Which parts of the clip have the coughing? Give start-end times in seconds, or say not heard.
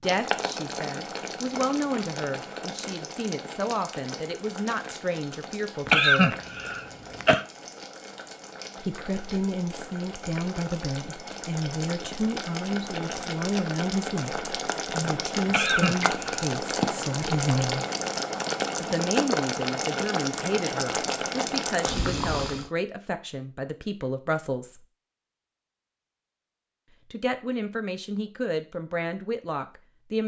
5.8-7.5, 15.4-16.4.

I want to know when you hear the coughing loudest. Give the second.
6 s.